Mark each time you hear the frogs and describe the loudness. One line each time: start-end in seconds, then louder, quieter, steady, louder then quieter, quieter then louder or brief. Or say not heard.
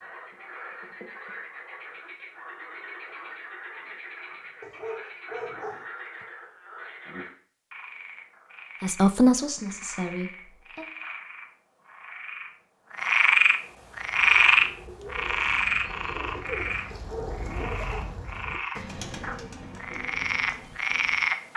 0.0-21.5 louder then quieter.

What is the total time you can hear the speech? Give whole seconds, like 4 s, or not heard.
2 s.